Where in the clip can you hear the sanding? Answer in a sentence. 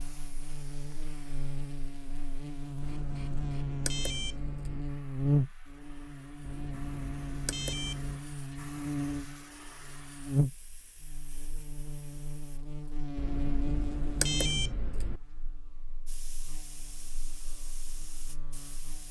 The sanding can't be heard in this clip.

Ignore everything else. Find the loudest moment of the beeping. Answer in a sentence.
The volume of the beeping peaks at 14 seconds.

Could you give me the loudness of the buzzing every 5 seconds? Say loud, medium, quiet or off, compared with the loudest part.
medium, loud, loud, quiet.